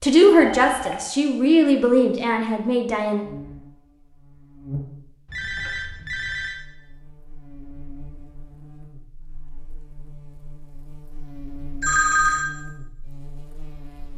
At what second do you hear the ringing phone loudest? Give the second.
12 s.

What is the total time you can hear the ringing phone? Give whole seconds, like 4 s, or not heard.
3 s.